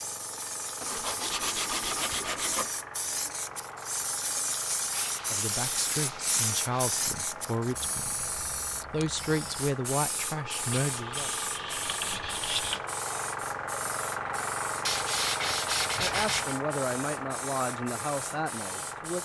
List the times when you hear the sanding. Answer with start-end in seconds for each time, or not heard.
0.8-2.7, 4.9-7.0, 10.8-12.8, 14.8-16.6.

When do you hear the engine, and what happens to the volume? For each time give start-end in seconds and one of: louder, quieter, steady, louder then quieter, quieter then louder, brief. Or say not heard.
0.0-19.2 louder.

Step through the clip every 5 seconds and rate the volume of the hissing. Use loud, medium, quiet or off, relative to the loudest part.
loud, loud, medium, medium.